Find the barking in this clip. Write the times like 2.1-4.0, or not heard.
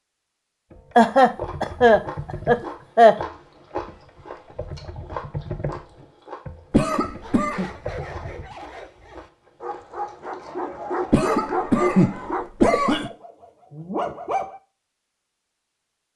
7.2-14.6.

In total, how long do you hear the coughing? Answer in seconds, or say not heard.
5 s.